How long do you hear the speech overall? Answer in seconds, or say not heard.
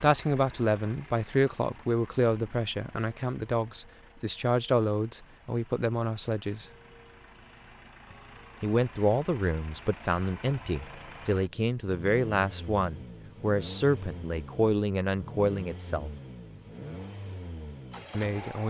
15 s.